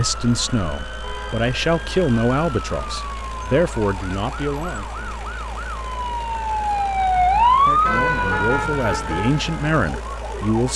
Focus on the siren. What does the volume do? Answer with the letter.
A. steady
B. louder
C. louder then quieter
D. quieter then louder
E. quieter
C.